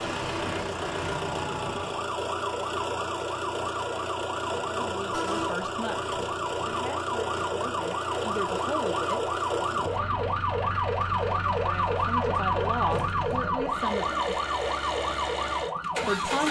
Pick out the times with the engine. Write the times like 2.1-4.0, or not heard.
0.0-16.4.